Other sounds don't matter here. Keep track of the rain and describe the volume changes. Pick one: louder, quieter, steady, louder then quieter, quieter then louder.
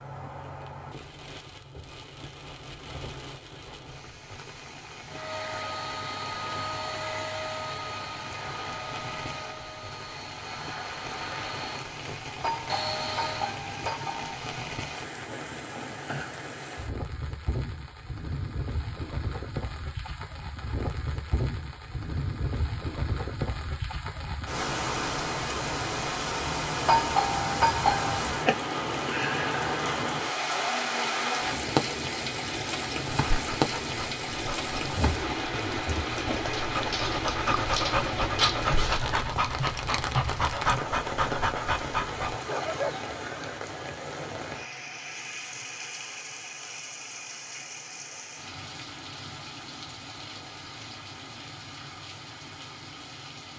louder then quieter.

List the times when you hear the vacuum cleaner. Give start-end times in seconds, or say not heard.
5.0-13.6.